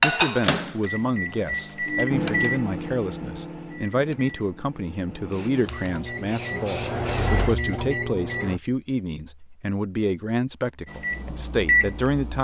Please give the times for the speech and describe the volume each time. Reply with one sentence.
The speech can be heard from 0.0 to 12.3 s, at a steady volume.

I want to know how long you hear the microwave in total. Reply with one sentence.
The microwave can be heard for 10 seconds in total.